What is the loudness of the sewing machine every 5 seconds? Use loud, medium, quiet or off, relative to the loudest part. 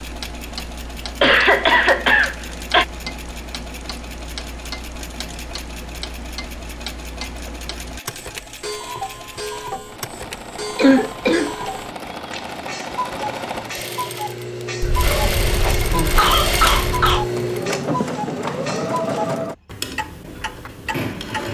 quiet, quiet, medium, loud, medium.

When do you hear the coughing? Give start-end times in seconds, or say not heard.
1.2-2.9, 10.8-11.7, 14.8-17.2.